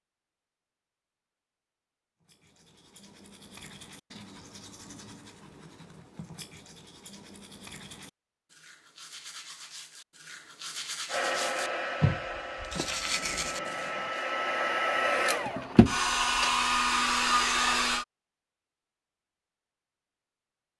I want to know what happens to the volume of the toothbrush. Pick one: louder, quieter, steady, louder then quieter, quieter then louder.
louder.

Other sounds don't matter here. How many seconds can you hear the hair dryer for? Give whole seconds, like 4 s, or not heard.
7 s.